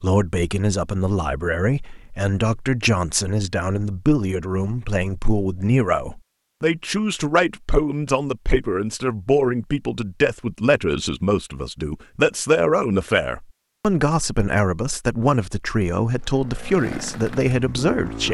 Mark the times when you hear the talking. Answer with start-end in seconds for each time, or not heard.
0.0-18.2.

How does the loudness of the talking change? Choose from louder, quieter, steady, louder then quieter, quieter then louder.
steady.